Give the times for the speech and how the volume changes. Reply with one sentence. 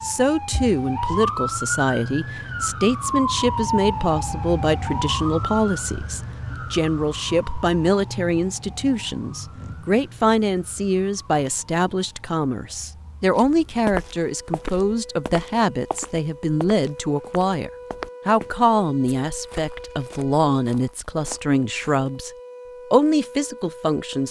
The speech can be heard from 0.0 to 22.3 s, at a steady volume; and briefly from 22.9 to 24.2 s.